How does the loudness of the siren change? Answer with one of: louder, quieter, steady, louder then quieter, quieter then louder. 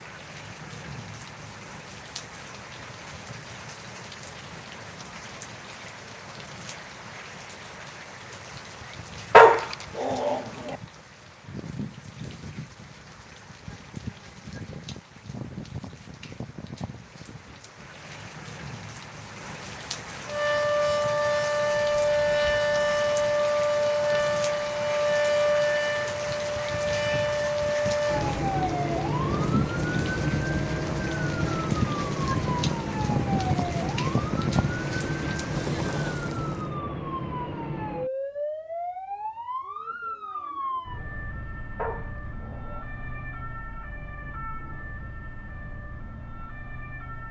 quieter.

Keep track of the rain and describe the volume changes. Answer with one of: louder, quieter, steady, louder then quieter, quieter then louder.
louder.